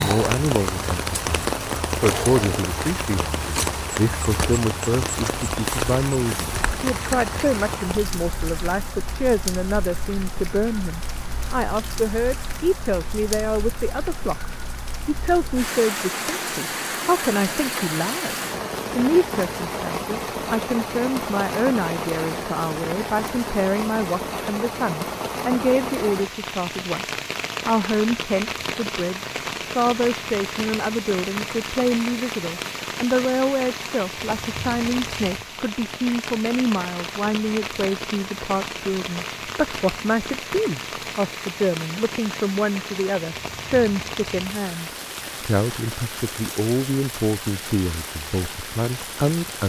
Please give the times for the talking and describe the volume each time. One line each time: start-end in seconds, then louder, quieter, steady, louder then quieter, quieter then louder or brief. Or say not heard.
0.0-49.6 steady.